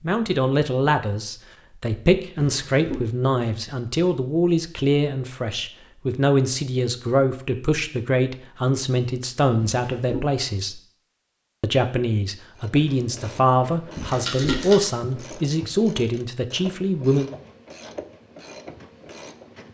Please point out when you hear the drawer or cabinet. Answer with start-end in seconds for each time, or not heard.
2.4-3.0, 9.6-10.3, 13.9-14.7.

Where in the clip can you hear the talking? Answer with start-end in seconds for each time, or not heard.
0.0-10.8, 11.6-17.3.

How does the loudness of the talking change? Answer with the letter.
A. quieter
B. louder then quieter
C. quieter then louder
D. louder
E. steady
E.